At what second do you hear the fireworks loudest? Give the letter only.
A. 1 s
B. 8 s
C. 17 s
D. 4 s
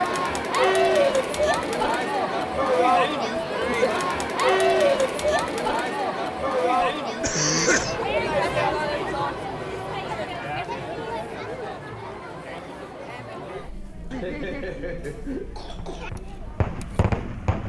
C.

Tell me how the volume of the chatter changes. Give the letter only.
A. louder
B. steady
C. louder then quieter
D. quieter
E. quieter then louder
D.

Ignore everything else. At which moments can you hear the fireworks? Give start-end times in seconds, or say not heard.
15.9-17.6.